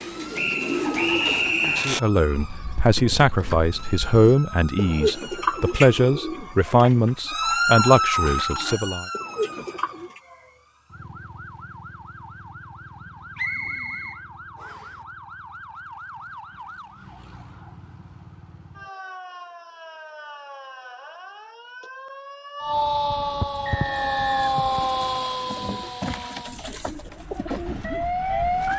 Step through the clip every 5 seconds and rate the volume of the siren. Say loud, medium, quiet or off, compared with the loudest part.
quiet, loud, quiet, quiet, loud, loud.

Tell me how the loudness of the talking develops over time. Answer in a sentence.
The loudness of the talking stays about the same.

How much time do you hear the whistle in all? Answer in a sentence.
The whistle can be heard for 5 seconds in total.